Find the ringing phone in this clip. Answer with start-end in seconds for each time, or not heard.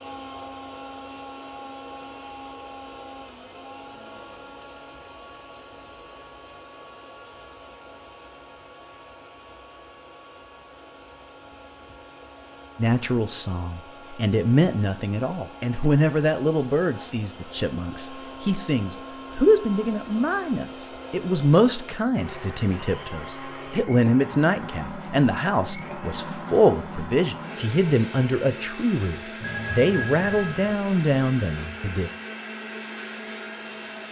29.4-30.8.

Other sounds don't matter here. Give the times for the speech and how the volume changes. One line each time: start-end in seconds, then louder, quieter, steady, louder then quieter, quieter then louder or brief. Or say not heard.
12.8-32.1 steady.